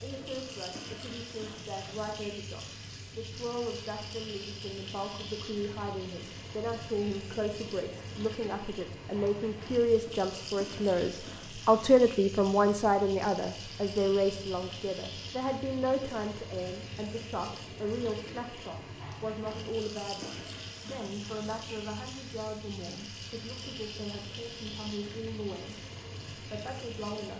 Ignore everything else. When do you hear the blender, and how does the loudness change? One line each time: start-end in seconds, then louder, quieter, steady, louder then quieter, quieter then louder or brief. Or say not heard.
not heard.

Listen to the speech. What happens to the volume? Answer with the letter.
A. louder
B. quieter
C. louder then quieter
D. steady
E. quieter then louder
C.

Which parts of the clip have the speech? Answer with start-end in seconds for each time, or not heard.
0.0-27.3.